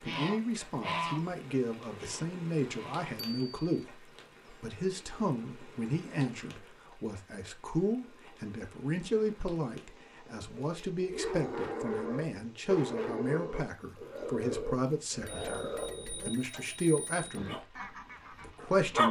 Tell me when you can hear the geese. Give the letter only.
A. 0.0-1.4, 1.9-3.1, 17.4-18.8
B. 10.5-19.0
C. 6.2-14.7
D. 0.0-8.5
A.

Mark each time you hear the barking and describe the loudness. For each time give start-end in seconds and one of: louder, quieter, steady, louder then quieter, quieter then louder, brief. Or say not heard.
10.5-19.0 quieter.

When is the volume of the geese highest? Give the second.
1 s.